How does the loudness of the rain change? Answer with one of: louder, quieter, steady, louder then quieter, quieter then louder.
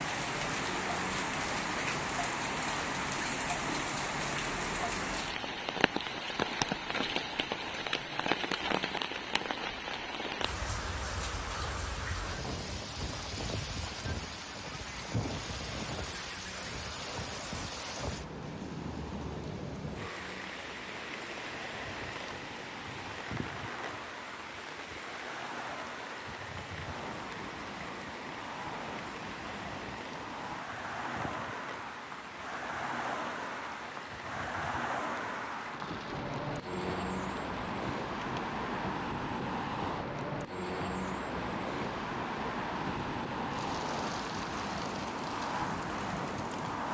quieter.